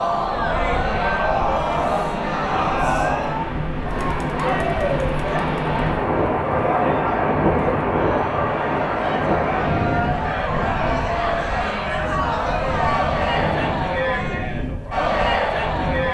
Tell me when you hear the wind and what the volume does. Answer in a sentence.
You can hear the wind from 0.0 to 16.0 s, getting louder then quieter.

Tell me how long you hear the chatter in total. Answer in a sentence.
The chatter can be heard for 16 seconds in total.